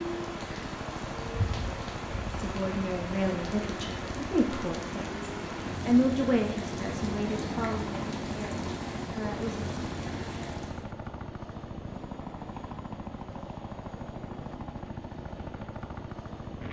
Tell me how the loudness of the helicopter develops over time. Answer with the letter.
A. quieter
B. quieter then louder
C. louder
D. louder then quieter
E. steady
E.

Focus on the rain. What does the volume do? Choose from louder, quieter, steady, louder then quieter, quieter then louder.
steady.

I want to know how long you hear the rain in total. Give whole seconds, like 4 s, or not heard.
11 s.